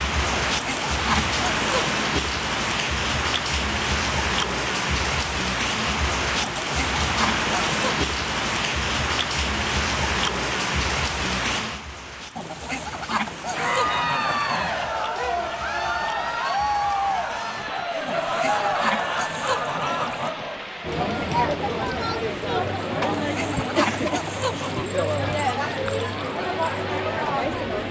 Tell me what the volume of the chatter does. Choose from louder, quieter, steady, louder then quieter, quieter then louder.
steady.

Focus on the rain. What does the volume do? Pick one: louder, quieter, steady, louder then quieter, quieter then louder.
quieter.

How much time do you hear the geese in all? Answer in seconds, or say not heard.
10 s.